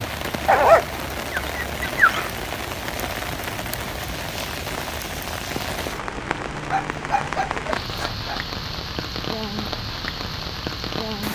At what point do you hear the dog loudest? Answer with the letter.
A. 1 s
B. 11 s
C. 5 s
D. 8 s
A.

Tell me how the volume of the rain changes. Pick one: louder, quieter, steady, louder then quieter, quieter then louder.
steady.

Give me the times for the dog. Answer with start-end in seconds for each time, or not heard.
0.5-2.3, 6.7-8.4.